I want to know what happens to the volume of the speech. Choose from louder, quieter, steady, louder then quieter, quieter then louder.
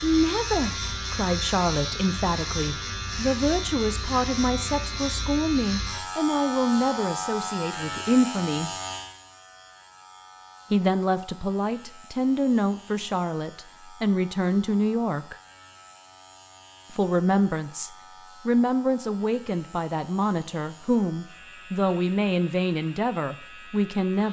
steady.